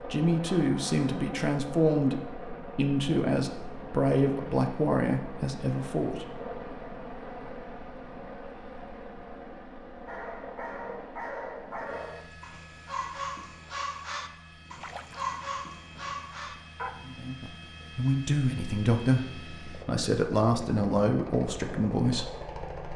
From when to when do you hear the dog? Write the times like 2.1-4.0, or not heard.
10.1-16.9.